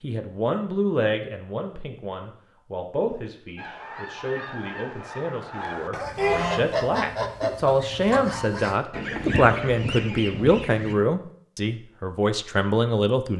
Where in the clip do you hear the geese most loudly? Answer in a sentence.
The loudest moment of the geese is at 6 seconds.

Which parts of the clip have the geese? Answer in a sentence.
The geese can be heard from 3.5 to 10.9 s.